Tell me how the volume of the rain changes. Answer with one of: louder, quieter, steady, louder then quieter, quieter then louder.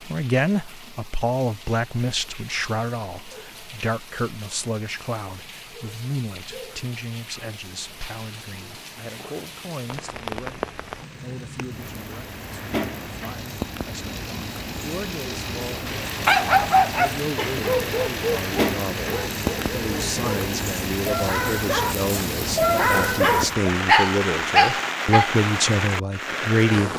louder.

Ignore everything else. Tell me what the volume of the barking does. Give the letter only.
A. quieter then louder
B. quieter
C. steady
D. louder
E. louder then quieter
A.